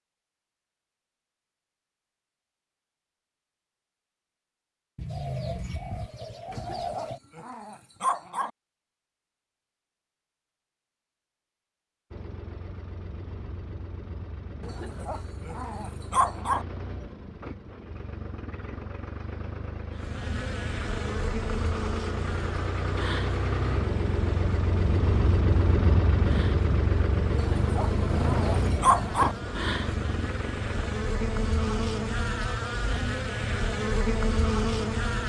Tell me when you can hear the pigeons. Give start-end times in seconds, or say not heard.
5.0-7.2, 28.0-29.5.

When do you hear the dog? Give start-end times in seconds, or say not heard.
6.5-8.5, 14.6-16.6, 27.3-29.4.